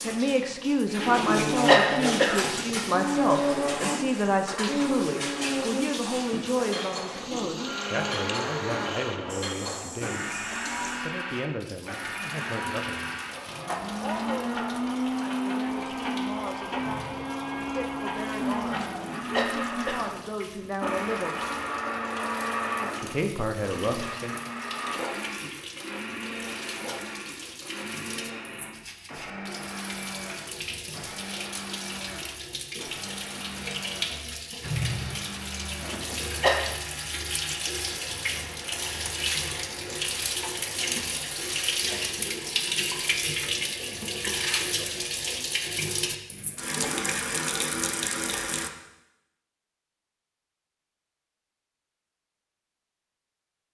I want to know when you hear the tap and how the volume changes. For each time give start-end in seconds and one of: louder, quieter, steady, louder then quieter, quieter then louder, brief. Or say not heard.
0.0-48.7 quieter then louder.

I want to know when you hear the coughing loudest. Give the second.
2 s.